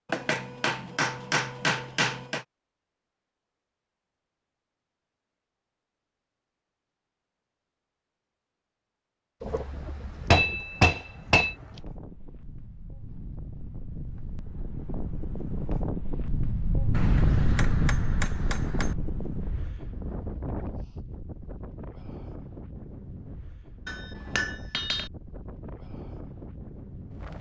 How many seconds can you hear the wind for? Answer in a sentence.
The wind can be heard for 18 seconds in total.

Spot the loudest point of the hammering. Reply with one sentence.
The volume of the hammering peaks at 10 seconds.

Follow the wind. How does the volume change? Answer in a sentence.
The loudness of the wind goes up, then down.